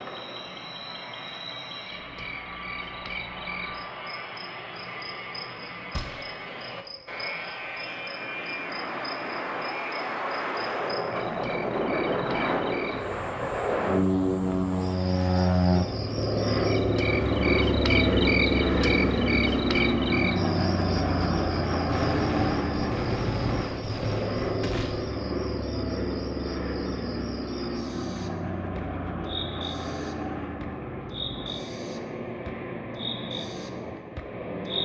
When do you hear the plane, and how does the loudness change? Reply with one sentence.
You can hear the plane from 0.0 to 34.7 s, getting louder then quieter.